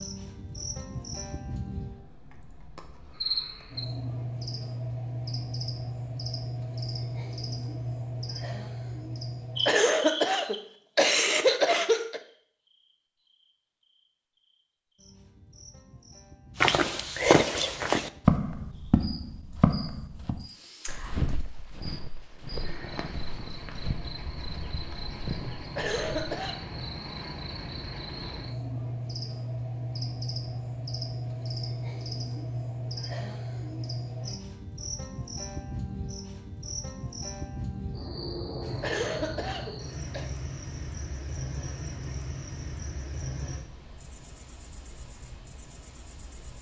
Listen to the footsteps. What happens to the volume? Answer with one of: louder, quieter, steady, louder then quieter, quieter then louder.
quieter.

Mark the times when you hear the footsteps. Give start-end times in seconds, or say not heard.
16.6-26.1.